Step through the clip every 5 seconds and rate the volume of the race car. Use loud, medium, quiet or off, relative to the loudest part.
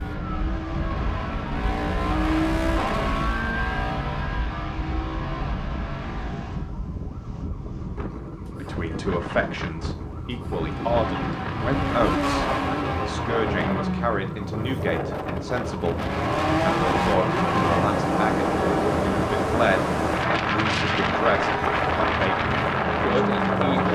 loud, medium, loud, loud, loud.